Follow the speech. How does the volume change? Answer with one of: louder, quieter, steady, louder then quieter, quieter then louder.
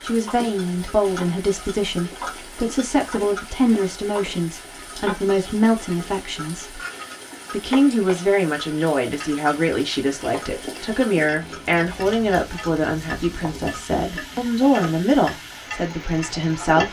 steady.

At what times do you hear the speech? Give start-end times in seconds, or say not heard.
0.0-6.8, 7.5-16.8.